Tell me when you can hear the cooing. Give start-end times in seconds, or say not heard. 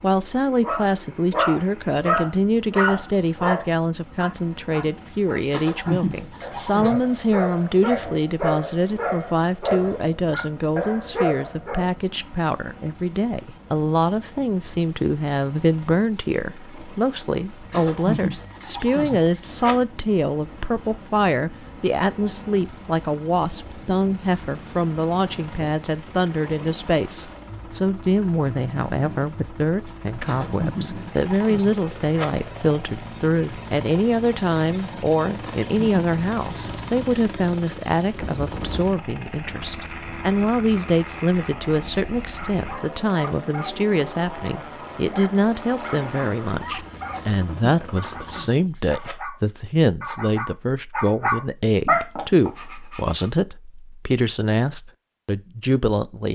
5.5-7.0, 17.7-19.8, 30.2-32.2, 35.4-36.9, 47.1-49.1.